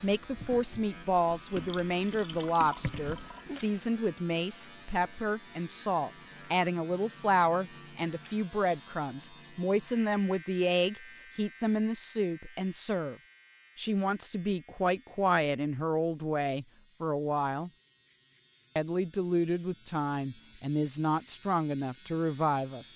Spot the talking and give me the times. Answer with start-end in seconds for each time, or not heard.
0.0-13.2, 13.8-17.7, 18.8-22.9.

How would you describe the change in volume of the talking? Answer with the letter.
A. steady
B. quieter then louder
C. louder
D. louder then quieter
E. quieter
A.